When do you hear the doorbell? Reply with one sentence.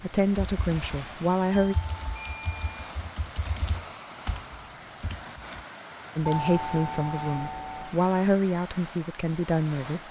You can hear the doorbell from 1.5 to 2.9 s and from 6.2 to 8.0 s.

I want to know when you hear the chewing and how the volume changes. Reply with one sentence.
The chewing can't be heard in this clip.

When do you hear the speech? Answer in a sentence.
The speech can be heard from 0.0 to 1.8 s and from 6.2 to 10.0 s.